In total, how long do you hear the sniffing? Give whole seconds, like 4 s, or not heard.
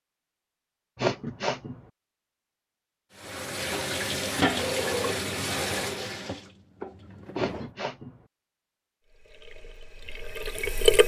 2 s.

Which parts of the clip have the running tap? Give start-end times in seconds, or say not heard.
3.1-7.7, 9.1-11.0.